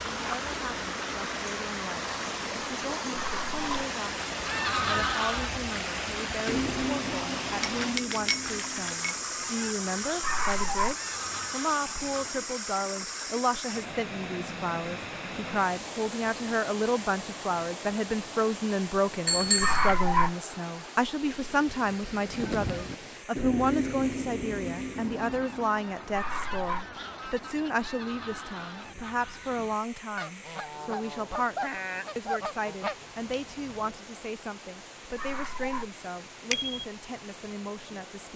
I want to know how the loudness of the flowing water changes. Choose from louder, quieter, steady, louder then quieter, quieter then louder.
quieter.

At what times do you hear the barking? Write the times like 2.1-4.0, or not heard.
3.1-3.6, 10.2-10.9, 19.6-20.4, 26.1-26.9, 35.1-35.9.